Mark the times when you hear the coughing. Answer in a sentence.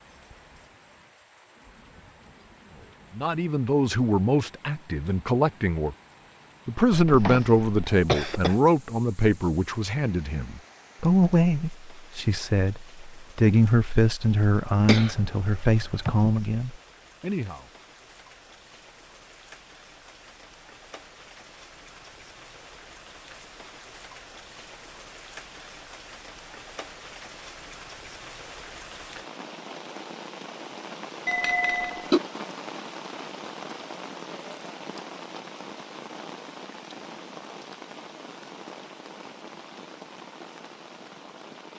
You can hear the coughing from 6.9 to 8.6 s, from 14.8 to 16.4 s and from 31.2 to 32.2 s.